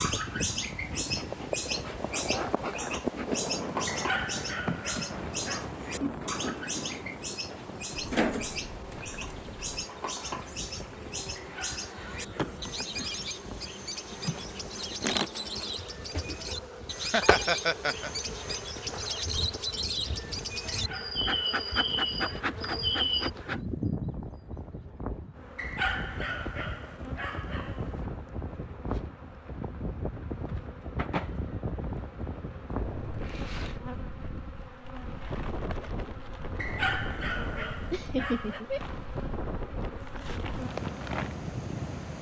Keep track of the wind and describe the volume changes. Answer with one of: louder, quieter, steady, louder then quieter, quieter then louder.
quieter then louder.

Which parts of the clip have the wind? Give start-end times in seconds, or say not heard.
0.0-42.1.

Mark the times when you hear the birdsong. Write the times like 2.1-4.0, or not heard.
0.0-23.3.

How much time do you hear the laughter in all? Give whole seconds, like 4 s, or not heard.
3 s.